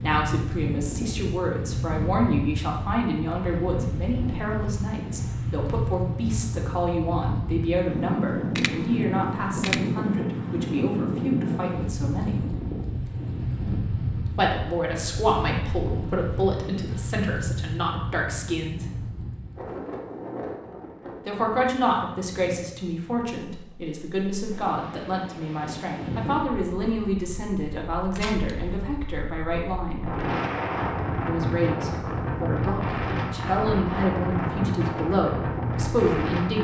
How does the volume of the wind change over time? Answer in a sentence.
The volume of the wind goes down, then up.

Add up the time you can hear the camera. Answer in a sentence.
You can hear the camera for 2 seconds altogether.